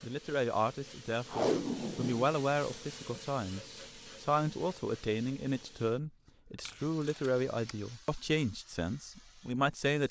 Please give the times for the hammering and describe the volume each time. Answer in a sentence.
You can't hear the hammering here.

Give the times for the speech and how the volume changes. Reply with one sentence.
The speech can be heard from 0.0 to 10.0 s, at a steady volume.